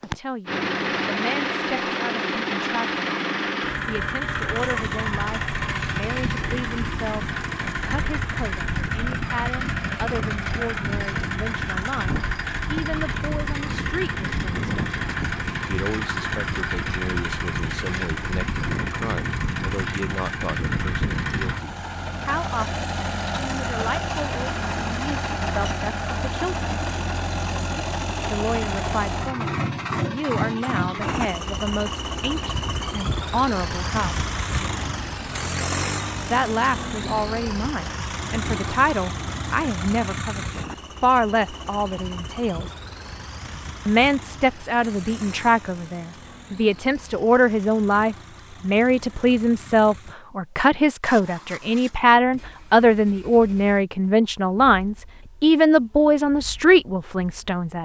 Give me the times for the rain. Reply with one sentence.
The rain can't be heard in this clip.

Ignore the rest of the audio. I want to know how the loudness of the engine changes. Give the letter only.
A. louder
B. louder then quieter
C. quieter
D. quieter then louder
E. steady
C.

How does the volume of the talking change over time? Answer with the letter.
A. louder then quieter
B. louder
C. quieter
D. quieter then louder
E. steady
B.